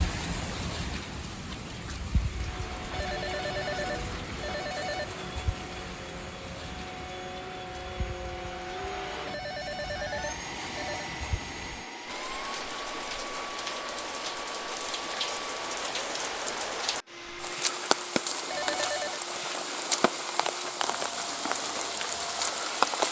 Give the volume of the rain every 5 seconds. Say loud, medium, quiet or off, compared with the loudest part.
medium, quiet, medium, loud, loud.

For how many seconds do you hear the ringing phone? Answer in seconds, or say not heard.
5 s.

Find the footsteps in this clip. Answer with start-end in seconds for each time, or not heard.
not heard.